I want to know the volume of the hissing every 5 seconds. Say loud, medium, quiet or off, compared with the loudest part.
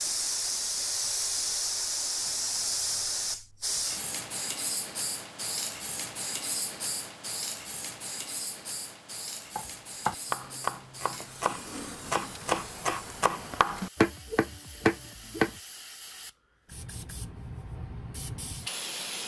loud, medium, quiet, medium.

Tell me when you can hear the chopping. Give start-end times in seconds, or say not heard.
9.6-15.6.